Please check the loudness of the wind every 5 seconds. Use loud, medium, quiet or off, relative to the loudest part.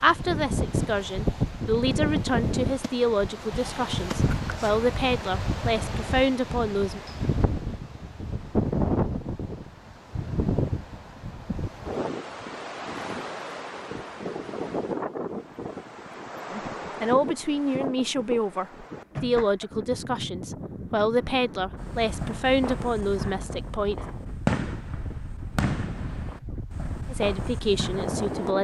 loud, loud, loud, medium, medium, medium.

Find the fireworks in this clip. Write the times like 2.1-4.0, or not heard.
21.8-28.5.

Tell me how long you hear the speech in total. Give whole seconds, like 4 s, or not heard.
16 s.